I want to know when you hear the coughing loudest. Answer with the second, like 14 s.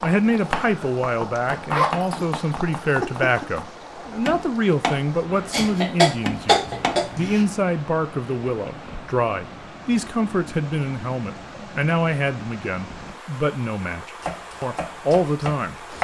6 s.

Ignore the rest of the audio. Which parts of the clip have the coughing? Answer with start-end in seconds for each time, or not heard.
5.5-7.5.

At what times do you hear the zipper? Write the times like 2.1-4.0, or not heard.
1.7-2.2.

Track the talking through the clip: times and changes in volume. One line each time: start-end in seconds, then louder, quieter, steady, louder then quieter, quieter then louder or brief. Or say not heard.
0.0-15.8 steady.